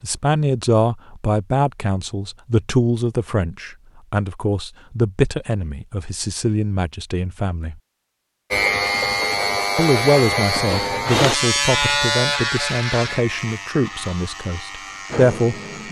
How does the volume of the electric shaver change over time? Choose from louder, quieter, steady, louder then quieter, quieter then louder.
quieter.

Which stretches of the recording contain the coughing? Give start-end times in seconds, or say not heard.
not heard.